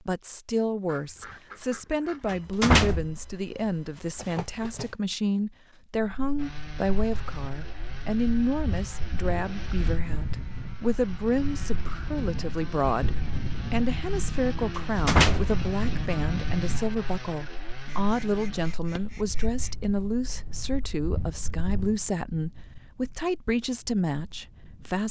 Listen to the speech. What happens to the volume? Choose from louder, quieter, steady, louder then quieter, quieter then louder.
steady.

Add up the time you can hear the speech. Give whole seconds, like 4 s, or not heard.
25 s.